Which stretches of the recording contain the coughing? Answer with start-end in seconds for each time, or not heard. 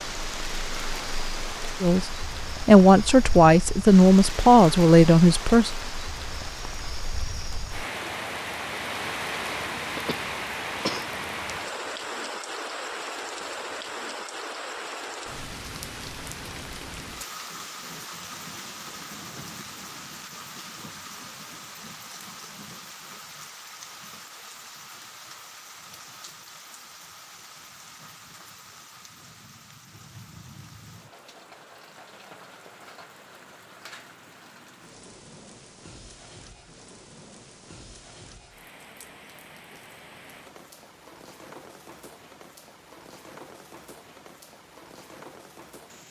9.9-11.2.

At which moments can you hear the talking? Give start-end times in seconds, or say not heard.
1.8-5.7.